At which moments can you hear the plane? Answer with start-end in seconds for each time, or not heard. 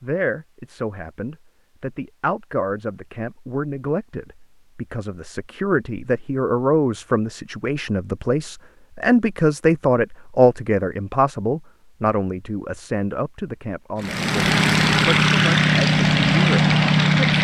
13.9-17.4.